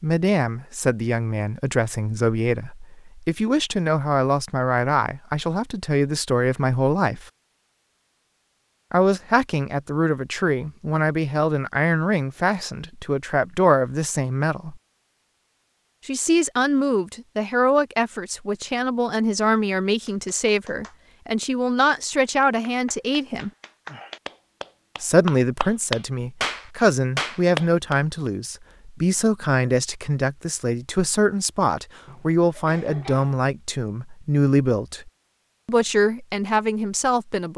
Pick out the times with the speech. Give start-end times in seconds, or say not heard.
0.0-7.2, 8.9-14.8, 16.1-23.5, 25.0-37.5.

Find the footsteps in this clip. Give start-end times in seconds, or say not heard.
not heard.